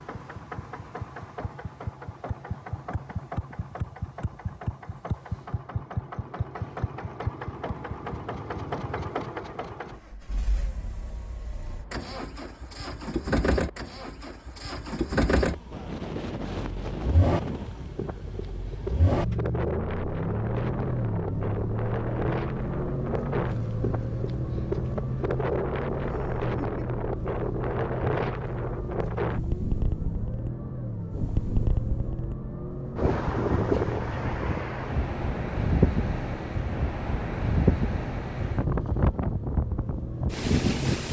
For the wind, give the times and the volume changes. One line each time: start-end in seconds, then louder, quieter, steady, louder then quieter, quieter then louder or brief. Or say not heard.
15.7-41.0 louder.